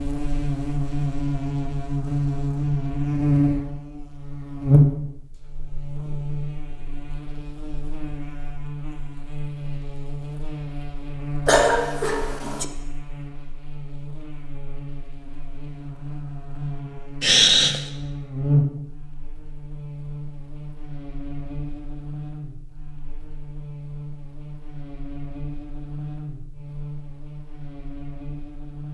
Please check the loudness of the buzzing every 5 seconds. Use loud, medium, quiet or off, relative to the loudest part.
loud, quiet, quiet, medium, quiet, quiet.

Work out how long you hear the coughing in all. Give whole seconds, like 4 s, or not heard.
2 s.